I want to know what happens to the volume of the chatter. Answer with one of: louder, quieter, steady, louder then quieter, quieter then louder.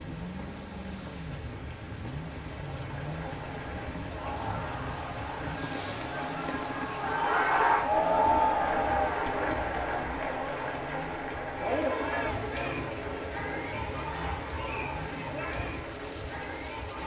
louder then quieter.